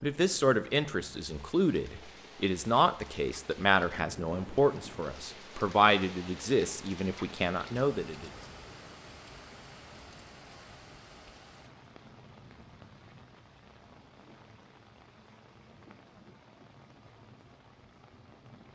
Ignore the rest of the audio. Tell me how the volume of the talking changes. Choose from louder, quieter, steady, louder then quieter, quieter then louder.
steady.